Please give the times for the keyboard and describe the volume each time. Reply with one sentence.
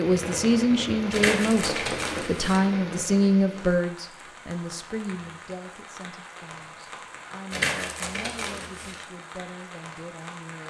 The keyboard can't be heard in this clip.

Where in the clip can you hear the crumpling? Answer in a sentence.
You can hear the crumpling from 1.1 to 2.6 s and from 7.5 to 9.1 s.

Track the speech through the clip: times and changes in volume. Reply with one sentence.
The speech can be heard from 0.0 to 10.6 s, getting quieter.